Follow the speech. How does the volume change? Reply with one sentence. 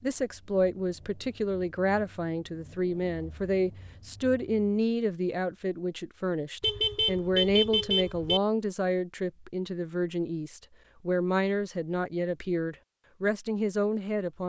The volume of the speech stays about the same.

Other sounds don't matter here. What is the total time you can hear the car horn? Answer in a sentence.
The car horn can be heard for 2 seconds in total.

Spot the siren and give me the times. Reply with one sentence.
You can't hear the siren here.